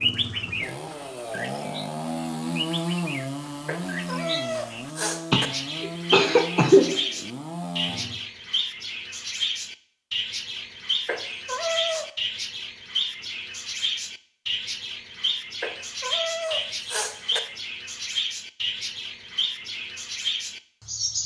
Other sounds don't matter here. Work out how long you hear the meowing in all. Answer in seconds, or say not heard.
5 s.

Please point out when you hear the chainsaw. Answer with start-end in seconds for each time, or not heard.
0.0-8.2.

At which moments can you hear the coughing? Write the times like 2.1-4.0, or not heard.
5.3-7.0.